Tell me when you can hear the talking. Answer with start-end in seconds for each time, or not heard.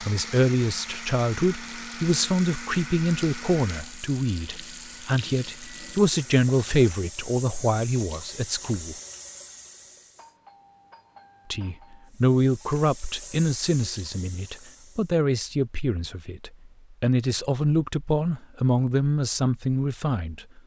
0.0-8.9, 11.5-20.6.